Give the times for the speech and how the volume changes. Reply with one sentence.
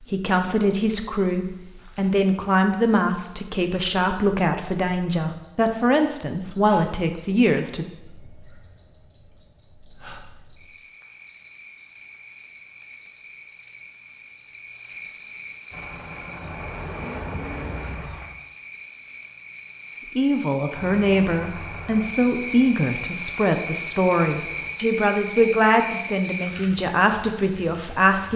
You can hear the speech from 0.0 to 7.8 s, at a steady volume; and from 20.1 to 28.3 s, at a steady volume.